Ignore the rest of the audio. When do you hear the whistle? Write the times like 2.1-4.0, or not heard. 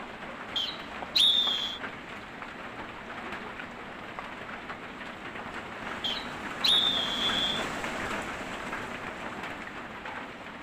0.6-1.8, 6.0-7.7.